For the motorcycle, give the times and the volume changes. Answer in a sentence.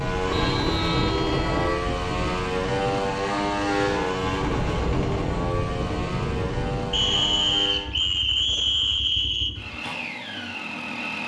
You can hear the motorcycle from 0.0 to 11.2 s, getting quieter.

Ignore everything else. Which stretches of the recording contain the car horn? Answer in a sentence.
You can hear the car horn from 0.2 to 1.9 s.